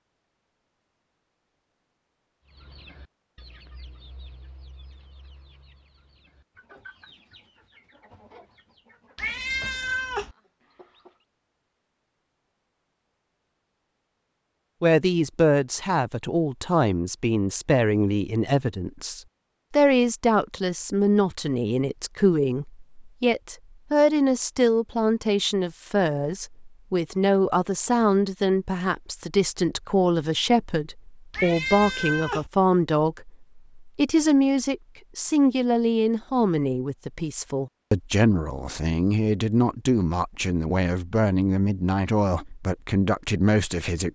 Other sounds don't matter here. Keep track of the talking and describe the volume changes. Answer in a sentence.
The loudness of the talking stays about the same.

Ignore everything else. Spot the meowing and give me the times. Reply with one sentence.
The meowing can be heard from 9.2 to 10.3 s and from 31.3 to 32.5 s.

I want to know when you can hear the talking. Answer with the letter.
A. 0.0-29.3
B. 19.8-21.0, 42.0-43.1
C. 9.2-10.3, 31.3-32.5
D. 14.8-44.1
D.